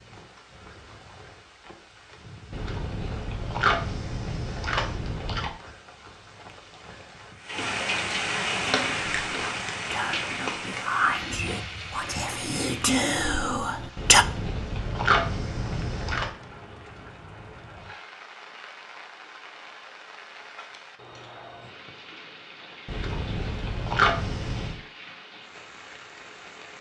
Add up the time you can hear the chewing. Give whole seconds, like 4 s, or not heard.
7 s.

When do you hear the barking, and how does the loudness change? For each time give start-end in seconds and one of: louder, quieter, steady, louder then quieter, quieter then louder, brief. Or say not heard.
not heard.